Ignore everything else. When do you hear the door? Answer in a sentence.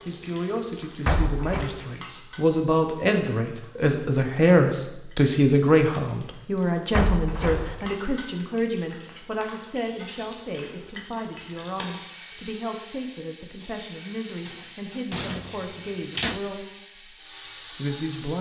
The door can be heard from 1.1 to 1.7 s, from 6.9 to 8.0 s and from 14.4 to 16.4 s.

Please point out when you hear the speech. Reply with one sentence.
You can hear the speech from 0.1 to 18.3 s.